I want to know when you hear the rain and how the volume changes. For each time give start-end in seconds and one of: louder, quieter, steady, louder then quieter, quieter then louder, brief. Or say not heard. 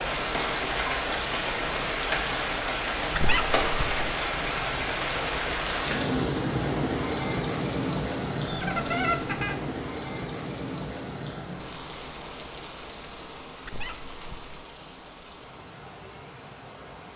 0.0-17.1 quieter.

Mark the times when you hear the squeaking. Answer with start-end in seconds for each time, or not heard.
3.1-4.0, 8.4-9.6, 13.7-14.7.